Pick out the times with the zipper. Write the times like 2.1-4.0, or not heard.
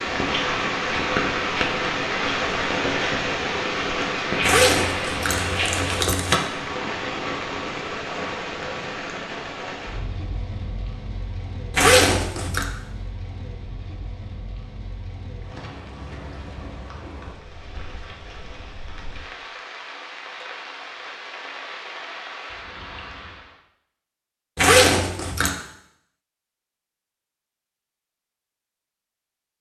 4.4-6.4, 11.7-12.7, 24.6-25.5.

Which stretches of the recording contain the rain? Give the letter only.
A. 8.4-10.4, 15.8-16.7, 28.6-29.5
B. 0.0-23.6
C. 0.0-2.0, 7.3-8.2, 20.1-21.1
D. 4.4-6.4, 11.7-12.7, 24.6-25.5
B.